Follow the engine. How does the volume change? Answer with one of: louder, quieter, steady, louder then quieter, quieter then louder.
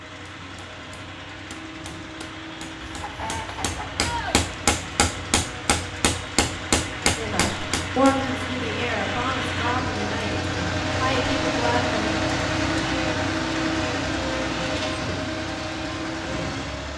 louder.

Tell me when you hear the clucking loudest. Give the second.
4 s.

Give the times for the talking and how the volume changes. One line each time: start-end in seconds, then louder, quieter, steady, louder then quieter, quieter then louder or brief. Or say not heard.
7.2-12.2 quieter then louder.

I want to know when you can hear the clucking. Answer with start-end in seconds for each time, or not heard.
2.8-4.3.